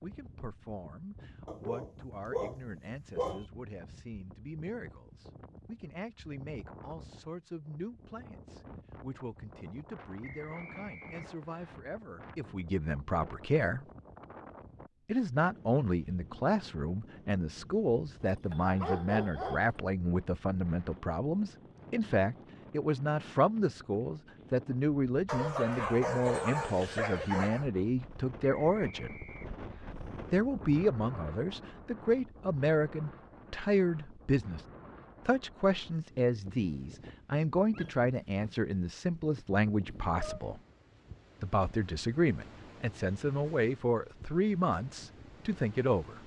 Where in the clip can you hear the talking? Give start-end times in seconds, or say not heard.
0.0-13.8, 15.1-29.1, 30.3-34.6, 35.2-40.6, 41.4-46.2.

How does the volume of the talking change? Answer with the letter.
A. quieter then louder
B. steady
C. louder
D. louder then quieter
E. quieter
C.